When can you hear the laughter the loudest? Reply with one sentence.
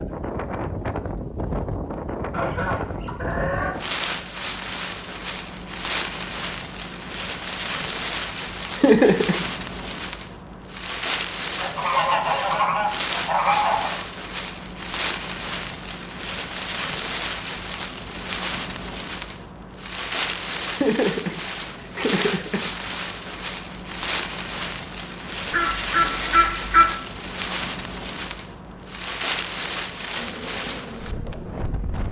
The loudest moment of the laughter is at 9 seconds.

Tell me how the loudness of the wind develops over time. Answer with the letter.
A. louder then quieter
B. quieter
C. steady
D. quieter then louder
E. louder
C.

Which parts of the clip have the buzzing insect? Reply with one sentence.
The buzzing insect can be heard from 30.1 to 32.0 s.